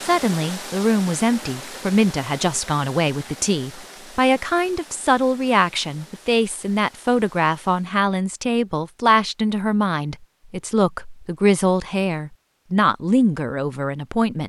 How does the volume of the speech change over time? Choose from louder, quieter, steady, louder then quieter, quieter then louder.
steady.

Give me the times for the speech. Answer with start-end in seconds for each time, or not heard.
0.0-14.4.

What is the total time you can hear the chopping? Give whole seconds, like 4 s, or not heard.
not heard.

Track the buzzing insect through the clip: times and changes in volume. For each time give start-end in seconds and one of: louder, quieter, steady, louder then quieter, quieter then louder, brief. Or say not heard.
not heard.